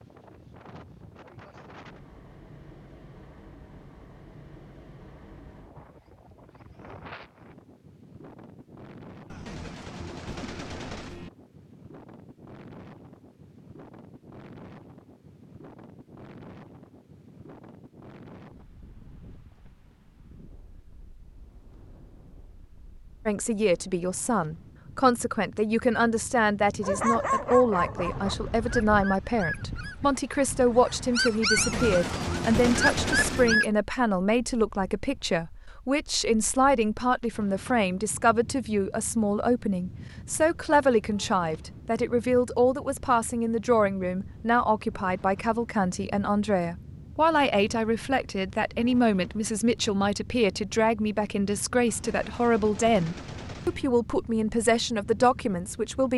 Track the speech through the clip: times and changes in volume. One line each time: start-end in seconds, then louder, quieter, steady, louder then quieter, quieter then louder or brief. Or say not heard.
23.2-56.1 steady.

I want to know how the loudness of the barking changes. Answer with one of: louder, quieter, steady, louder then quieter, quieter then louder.
quieter then louder.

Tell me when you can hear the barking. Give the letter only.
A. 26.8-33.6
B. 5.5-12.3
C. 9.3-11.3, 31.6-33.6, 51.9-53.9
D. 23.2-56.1
A.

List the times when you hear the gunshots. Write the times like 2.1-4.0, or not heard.
9.3-11.3, 31.6-33.6, 51.9-53.9.